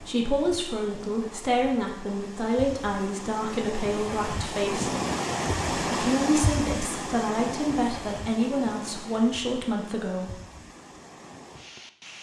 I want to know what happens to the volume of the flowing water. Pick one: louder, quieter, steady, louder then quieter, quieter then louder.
louder then quieter.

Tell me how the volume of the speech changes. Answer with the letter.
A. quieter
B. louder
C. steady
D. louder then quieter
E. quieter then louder
C.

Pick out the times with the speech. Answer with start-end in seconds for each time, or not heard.
0.0-4.9, 5.9-10.4.